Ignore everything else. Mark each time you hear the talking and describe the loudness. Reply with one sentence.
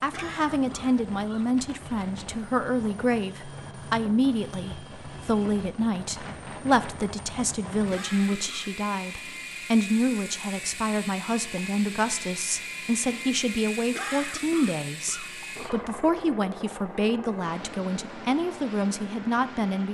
You can hear the talking from 0.0 to 19.9 s, at a steady volume.